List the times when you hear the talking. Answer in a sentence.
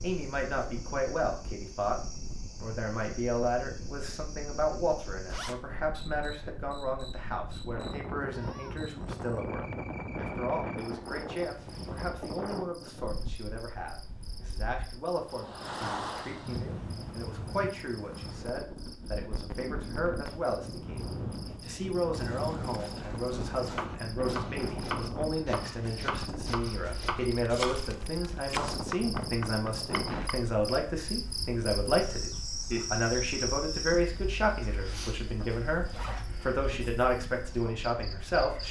The talking can be heard from 0.0 to 21.0 s and from 21.6 to 38.6 s.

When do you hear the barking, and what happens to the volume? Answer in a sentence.
The barking can't be heard in this clip.